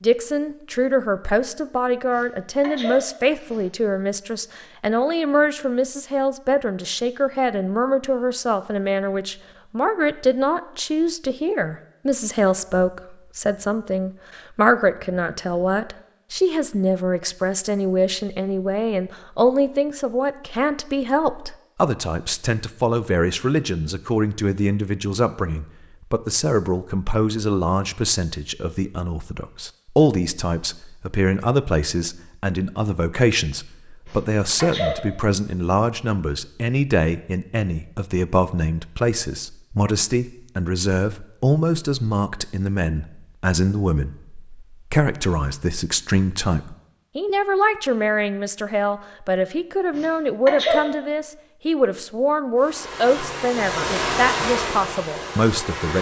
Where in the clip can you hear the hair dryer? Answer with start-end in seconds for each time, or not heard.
52.5-55.9.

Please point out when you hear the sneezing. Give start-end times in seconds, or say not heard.
2.1-3.6, 34.0-35.0, 50.0-50.8.